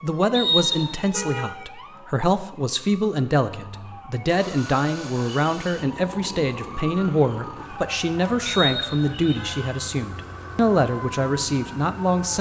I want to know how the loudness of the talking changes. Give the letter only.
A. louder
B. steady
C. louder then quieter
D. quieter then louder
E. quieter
B.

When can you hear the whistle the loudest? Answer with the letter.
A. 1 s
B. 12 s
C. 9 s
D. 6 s
A.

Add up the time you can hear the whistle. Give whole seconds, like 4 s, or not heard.
2 s.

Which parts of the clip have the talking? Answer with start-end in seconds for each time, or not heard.
0.0-12.3.